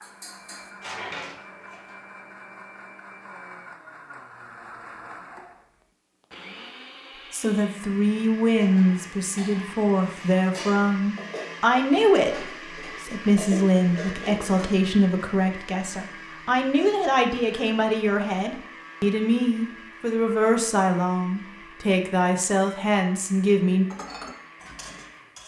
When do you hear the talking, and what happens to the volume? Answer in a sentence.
You can hear the talking from 7.3 to 23.9 s, at a steady volume.